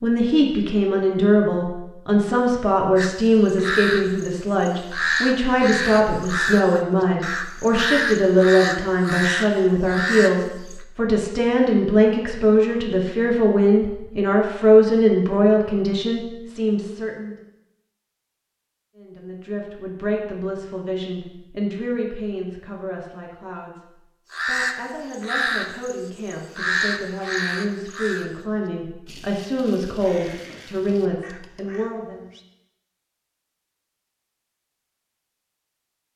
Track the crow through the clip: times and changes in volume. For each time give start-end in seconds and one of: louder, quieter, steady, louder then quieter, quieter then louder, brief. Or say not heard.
3.0-10.8 steady
24.3-32.5 quieter.